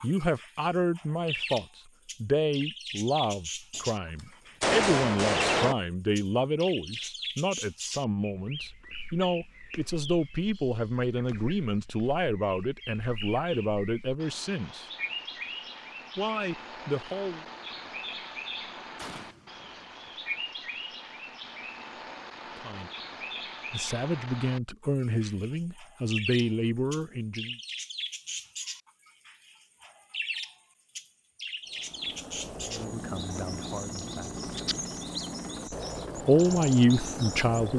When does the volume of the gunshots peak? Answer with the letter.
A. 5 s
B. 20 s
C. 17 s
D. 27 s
A.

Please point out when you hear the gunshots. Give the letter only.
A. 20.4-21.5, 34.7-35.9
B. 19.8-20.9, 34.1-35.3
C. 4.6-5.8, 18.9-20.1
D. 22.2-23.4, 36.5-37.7
C.